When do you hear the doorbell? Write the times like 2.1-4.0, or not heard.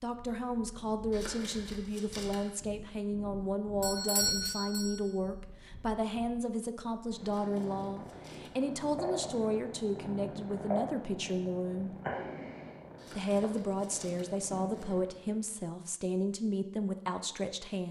3.8-5.0.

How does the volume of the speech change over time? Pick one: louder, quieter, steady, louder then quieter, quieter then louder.
steady.